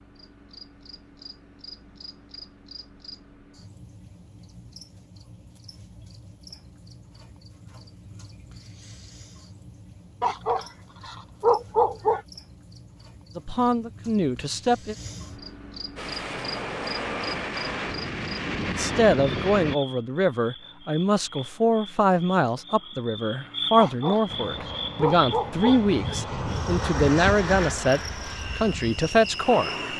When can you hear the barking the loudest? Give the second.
12 s.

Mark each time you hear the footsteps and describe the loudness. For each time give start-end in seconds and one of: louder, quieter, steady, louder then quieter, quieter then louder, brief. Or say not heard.
not heard.